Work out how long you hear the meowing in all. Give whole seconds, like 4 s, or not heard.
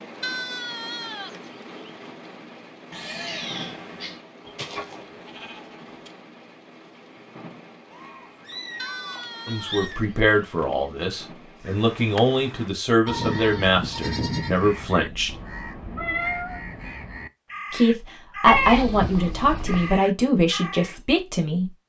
5 s.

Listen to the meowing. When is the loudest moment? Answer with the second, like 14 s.
16 s.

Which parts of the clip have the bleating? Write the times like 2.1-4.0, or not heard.
0.2-1.9, 4.5-6.1, 8.8-10.9, 13.1-14.8, 18.4-19.9.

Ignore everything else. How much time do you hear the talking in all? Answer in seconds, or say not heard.
10 s.